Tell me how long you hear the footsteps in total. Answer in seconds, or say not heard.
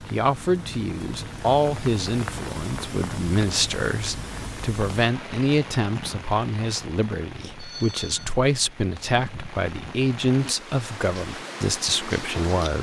not heard.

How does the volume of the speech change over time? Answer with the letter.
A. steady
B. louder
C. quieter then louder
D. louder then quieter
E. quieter
A.